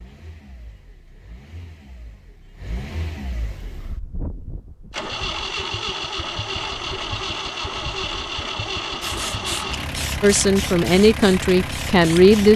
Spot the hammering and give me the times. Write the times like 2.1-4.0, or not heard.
not heard.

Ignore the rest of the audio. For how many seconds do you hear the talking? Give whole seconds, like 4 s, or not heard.
2 s.